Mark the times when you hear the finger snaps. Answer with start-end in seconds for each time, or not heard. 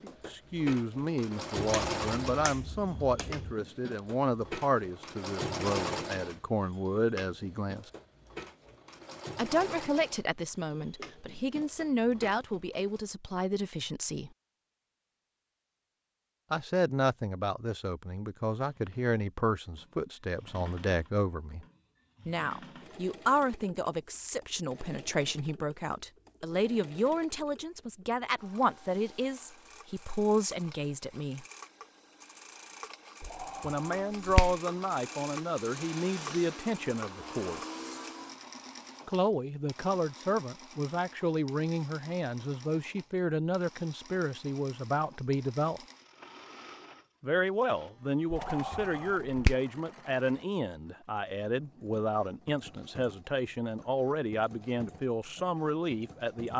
1.6-3.5, 33.2-34.6, 48.3-49.5.